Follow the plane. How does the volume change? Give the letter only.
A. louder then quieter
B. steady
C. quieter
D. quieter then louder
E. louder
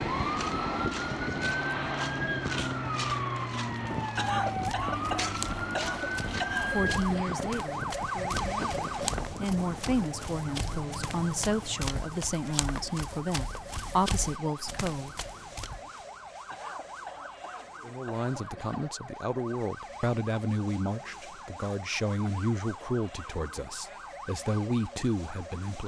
C.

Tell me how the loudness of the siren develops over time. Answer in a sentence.
The volume of the siren goes down.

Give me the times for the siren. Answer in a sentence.
The siren can be heard from 0.0 to 25.8 s.